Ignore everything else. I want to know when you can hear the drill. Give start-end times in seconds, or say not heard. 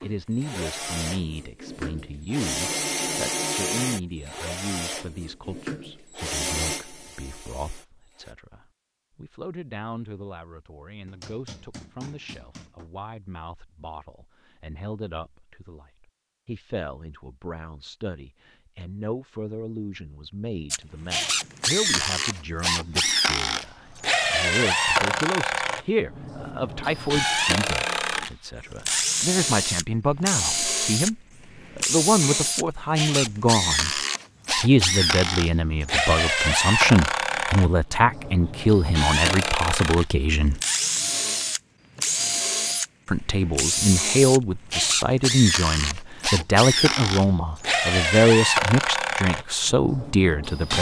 0.0-8.3, 20.7-50.7.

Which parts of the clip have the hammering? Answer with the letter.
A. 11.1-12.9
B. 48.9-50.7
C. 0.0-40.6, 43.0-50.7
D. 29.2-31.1
A.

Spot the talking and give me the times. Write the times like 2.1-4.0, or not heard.
0.0-40.6, 43.0-50.7.